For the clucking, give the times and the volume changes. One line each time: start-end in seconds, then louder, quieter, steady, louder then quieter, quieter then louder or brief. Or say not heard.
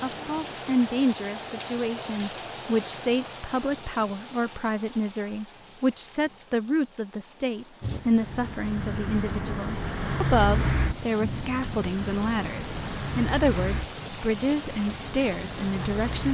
not heard.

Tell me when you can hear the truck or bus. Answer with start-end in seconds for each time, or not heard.
7.8-16.3.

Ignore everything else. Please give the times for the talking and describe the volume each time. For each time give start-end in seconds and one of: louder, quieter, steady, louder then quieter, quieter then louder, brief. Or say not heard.
0.0-16.3 steady.